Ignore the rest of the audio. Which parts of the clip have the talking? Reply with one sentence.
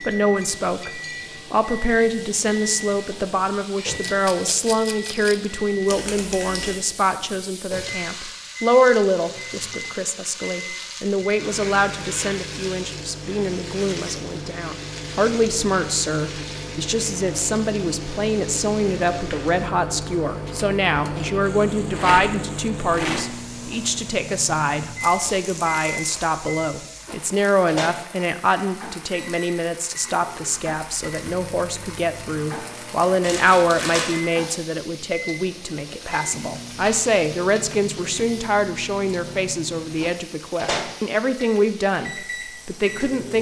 The talking can be heard from 0.0 to 43.3 s.